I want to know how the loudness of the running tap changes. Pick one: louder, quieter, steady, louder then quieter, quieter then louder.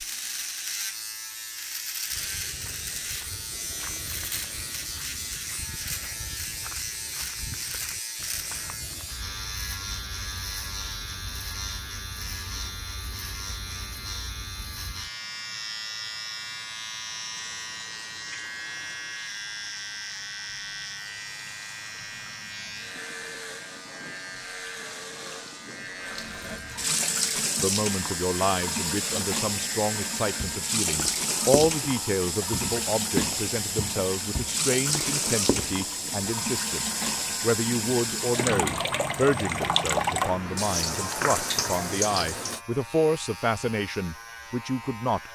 louder.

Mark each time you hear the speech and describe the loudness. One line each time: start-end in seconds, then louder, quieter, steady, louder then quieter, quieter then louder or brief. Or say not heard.
27.6-45.3 steady.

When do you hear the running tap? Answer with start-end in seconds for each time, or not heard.
17.3-42.6.